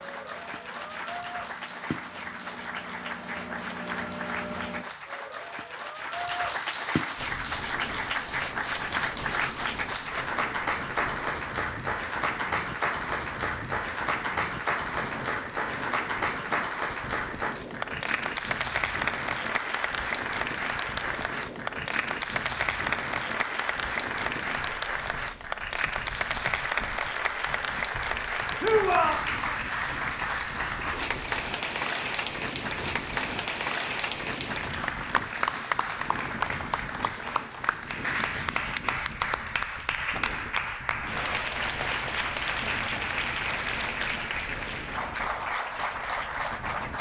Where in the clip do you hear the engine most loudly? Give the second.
4 s.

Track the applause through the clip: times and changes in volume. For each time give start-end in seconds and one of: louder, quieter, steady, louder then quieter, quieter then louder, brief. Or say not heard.
0.0-46.9 steady.